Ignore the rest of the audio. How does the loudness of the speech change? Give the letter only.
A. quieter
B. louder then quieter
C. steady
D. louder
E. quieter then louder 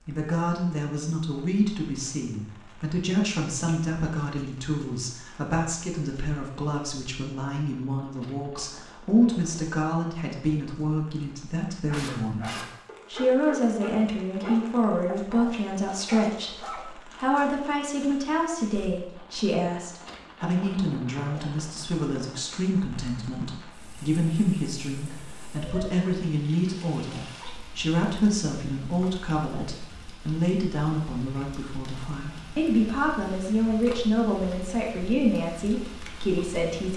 C.